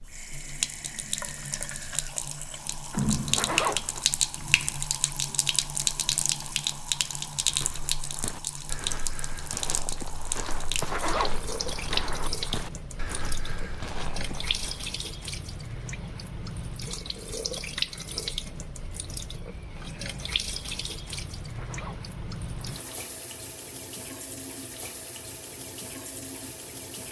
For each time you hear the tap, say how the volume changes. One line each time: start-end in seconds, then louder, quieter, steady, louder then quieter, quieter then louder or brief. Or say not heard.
0.0-27.0 quieter.